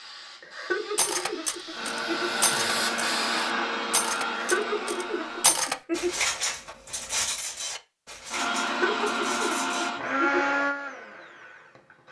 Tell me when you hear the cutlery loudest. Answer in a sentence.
The loudest moment of the cutlery is at 6 seconds.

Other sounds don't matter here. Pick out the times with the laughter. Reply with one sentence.
The laughter can be heard from 0.4 to 2.4 s, from 4.2 to 6.2 s and from 8.6 to 10.5 s.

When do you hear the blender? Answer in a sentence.
The blender can be heard from 1.7 to 5.5 s and from 8.3 to 12.0 s.